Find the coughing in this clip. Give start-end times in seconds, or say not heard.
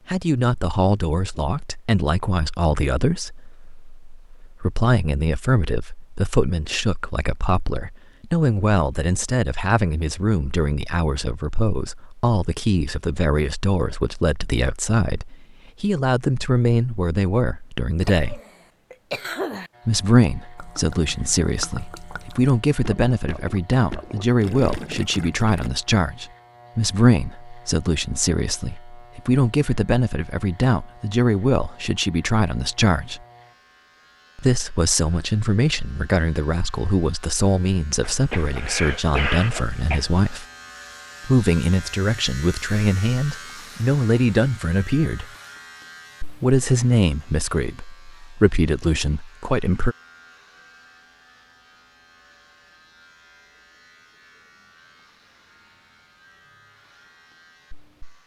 18.1-19.7, 38.0-40.0.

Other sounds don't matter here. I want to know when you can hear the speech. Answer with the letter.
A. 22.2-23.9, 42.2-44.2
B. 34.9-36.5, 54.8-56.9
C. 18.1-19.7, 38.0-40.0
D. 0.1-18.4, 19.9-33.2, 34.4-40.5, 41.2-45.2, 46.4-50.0
D.